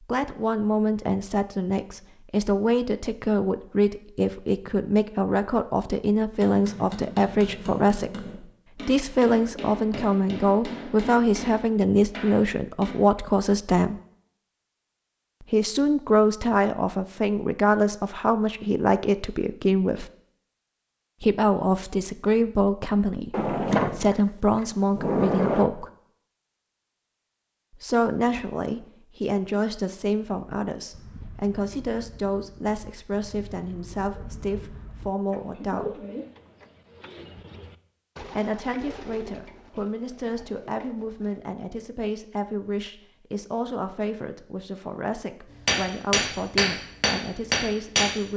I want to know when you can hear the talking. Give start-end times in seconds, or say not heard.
0.1-14.0, 15.5-20.1, 21.2-25.9, 27.8-36.0, 38.2-48.3.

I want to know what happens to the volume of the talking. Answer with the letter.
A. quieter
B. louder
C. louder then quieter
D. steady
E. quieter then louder
A.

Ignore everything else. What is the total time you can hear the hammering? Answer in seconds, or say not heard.
9 s.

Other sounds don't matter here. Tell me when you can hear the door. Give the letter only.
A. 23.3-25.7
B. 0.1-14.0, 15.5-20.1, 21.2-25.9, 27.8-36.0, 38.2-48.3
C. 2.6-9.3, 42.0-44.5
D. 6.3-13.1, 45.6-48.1
A.